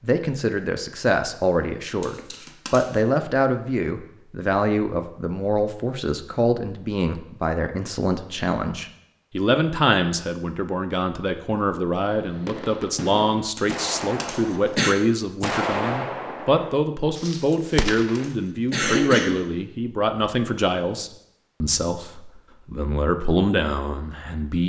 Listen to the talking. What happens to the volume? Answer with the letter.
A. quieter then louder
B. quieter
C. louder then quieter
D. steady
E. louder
D.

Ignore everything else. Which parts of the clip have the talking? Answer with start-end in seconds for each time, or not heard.
0.0-24.6.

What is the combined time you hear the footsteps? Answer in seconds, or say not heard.
not heard.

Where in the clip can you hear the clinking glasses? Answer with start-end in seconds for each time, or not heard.
not heard.